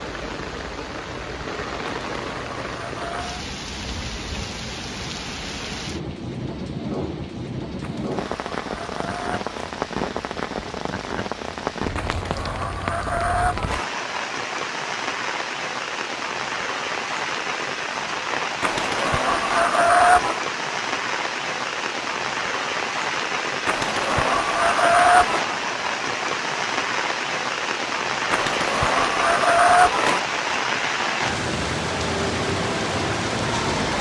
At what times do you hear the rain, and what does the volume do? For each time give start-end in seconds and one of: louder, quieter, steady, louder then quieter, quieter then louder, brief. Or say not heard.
0.0-33.9 louder.